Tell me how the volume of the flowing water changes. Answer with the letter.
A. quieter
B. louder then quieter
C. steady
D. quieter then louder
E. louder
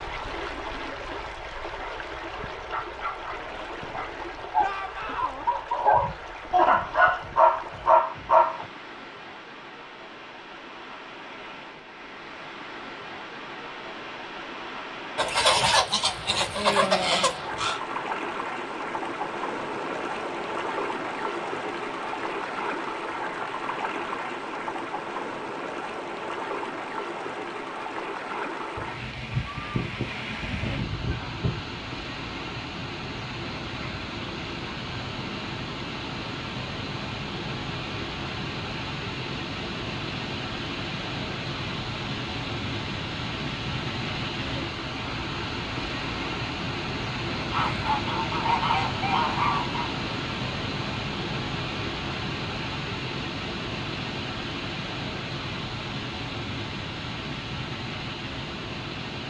E.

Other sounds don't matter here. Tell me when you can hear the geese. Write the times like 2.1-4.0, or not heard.
15.2-17.8, 28.8-31.6, 47.5-50.0.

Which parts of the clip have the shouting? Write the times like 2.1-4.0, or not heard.
4.6-5.5.